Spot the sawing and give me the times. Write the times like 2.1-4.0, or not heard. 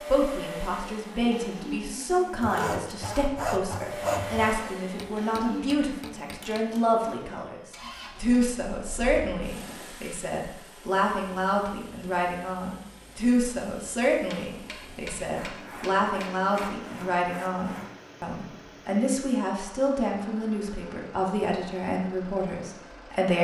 2.4-4.6, 15.3-18.1.